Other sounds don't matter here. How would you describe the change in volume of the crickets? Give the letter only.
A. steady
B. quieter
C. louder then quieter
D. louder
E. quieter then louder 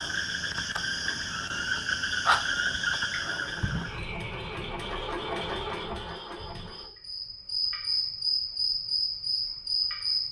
E.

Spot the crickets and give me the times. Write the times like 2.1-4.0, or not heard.
0.0-10.2.